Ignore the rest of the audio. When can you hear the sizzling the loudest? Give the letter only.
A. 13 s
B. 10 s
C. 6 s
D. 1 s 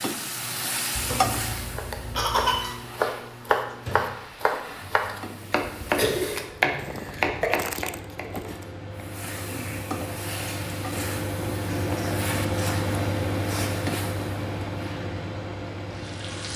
D.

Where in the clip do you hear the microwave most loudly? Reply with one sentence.
The loudest moment of the microwave is at 13 seconds.